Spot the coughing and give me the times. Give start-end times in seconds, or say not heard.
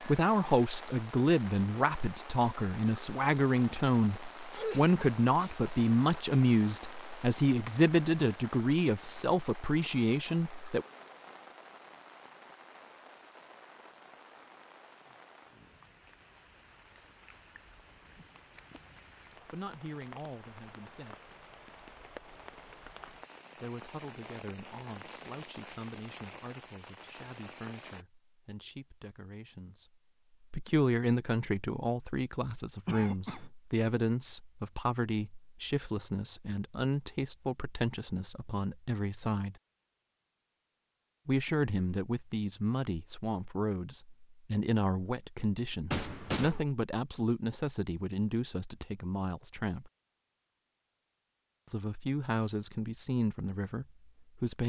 4.5-5.7, 32.9-33.5, 45.9-46.6.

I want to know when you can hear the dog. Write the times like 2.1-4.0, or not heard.
not heard.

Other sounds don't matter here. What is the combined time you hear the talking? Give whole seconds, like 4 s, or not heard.
40 s.